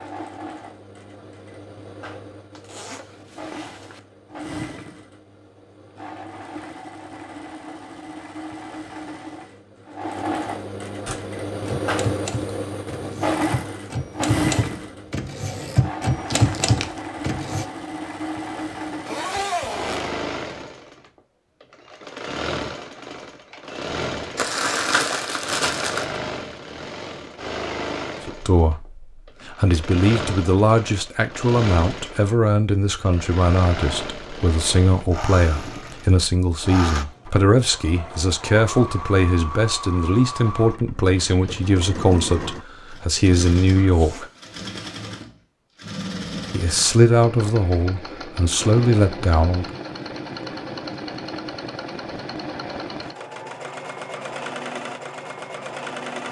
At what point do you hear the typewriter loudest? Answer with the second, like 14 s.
17 s.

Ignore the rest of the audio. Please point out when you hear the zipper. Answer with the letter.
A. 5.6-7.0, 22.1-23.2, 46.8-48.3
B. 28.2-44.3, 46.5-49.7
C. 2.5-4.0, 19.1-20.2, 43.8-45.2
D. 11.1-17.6
C.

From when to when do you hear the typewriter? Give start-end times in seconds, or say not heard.
11.1-17.6.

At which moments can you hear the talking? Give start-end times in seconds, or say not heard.
28.2-44.3, 46.5-49.7.